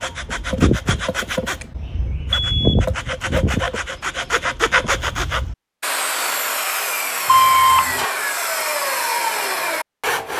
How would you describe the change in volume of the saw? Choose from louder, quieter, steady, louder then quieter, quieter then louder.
steady.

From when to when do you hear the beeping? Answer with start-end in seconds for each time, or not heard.
2.4-2.8, 7.2-8.1.